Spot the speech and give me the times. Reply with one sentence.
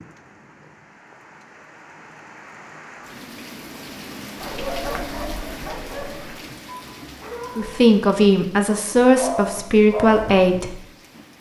The speech can be heard from 7.5 to 10.8 s.